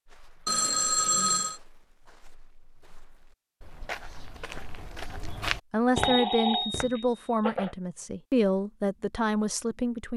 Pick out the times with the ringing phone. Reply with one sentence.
You can hear the ringing phone from 0.5 to 1.6 s and from 6.0 to 7.8 s.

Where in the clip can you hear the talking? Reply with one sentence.
You can hear the talking from 5.7 to 10.1 s.